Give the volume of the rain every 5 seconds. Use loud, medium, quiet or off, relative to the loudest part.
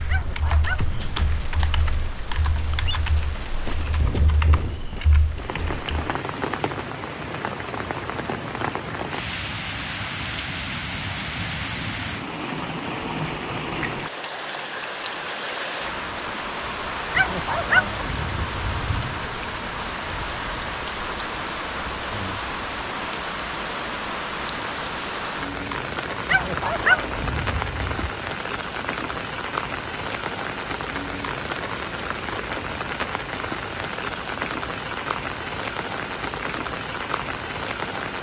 medium, loud, loud, loud, loud, loud, loud, loud.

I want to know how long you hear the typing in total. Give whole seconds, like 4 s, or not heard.
6 s.